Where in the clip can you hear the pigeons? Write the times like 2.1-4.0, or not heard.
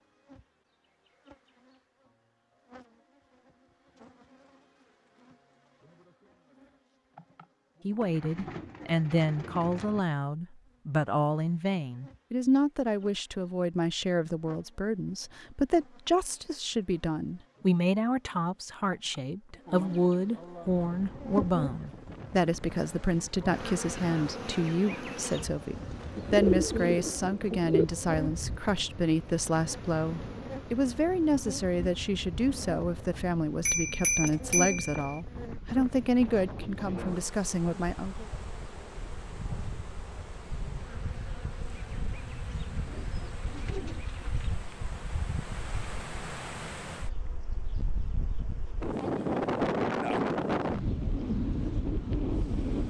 8.0-10.0, 26.1-27.9, 42.8-44.5.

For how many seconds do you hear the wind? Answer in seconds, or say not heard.
32 s.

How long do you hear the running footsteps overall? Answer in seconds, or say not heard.
not heard.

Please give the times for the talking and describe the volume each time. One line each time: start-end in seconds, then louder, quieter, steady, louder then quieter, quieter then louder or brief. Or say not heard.
7.8-38.2 steady.